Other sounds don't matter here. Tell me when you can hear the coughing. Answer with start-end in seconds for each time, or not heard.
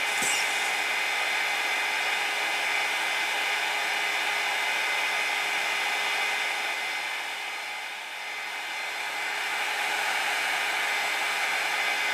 0.1-0.8.